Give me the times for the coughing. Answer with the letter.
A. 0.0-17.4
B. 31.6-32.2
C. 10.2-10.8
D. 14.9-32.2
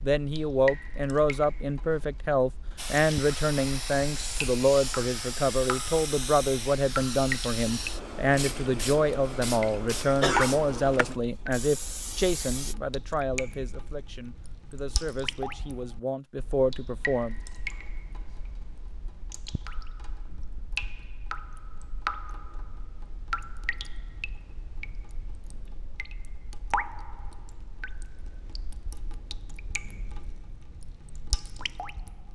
C.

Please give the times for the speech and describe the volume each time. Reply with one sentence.
The speech can be heard from 0.0 to 17.4 s, getting quieter.